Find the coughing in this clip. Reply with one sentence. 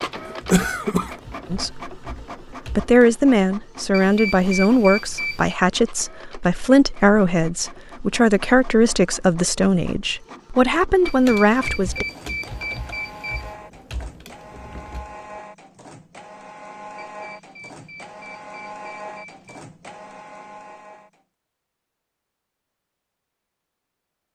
The coughing can be heard from 0.3 to 1.1 s.